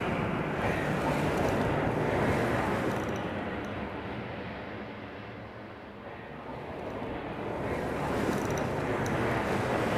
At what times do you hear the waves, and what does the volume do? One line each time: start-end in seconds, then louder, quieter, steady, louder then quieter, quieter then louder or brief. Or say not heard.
0.0-9.9 quieter then louder.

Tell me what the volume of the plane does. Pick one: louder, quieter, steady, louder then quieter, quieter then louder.
quieter then louder.